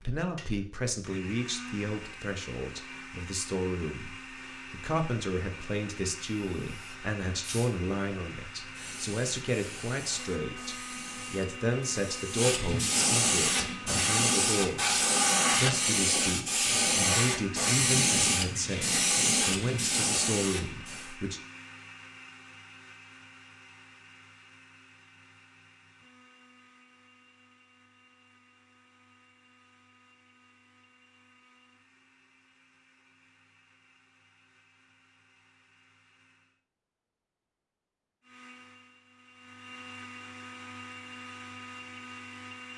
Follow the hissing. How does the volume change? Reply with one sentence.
The loudness of the hissing goes up.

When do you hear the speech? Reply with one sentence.
You can hear the speech from 0.0 to 21.4 s.